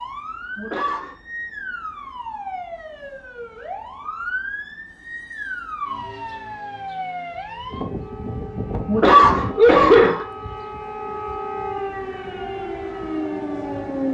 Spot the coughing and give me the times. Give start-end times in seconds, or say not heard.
0.6-1.1, 8.8-10.2.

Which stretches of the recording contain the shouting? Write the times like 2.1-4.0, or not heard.
not heard.